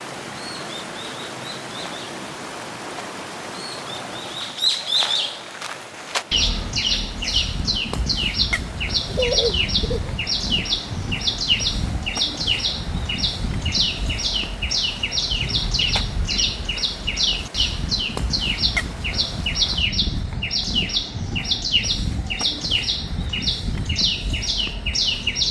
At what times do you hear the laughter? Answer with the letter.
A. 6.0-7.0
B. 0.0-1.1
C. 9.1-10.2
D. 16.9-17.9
C.